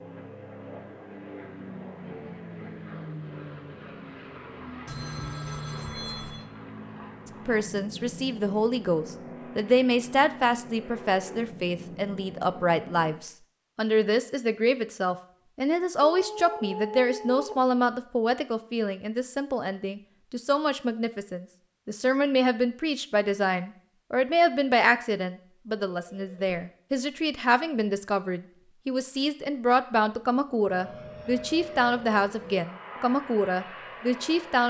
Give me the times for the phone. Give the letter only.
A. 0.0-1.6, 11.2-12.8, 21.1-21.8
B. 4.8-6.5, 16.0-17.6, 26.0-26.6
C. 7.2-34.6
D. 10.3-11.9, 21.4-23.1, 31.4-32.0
B.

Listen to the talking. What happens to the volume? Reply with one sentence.
The volume of the talking stays about the same.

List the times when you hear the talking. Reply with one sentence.
The talking can be heard from 7.2 to 34.6 s.